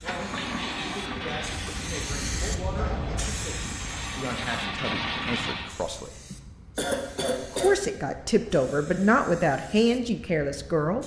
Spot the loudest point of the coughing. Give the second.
7 s.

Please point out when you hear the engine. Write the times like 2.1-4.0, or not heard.
0.0-5.7.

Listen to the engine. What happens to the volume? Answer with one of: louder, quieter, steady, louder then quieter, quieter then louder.
quieter then louder.